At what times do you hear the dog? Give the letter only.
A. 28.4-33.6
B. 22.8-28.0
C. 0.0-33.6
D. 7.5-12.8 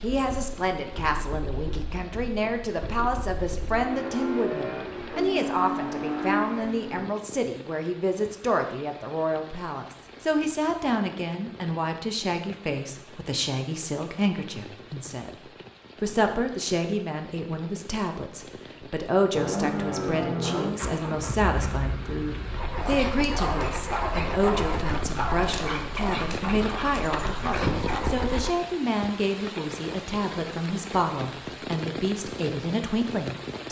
B.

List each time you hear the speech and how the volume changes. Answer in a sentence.
You can hear the speech from 0.0 to 33.6 s, at a steady volume.